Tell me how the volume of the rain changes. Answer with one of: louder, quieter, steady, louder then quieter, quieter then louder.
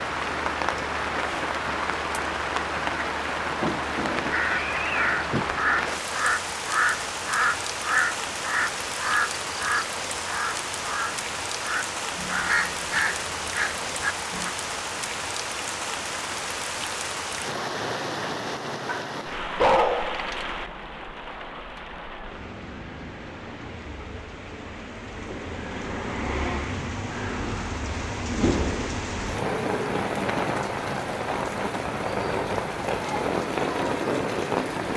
quieter then louder.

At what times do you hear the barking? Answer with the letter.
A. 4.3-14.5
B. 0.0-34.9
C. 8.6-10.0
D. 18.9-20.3
D.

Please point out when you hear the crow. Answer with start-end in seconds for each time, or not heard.
4.3-14.5.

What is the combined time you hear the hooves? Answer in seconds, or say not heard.
not heard.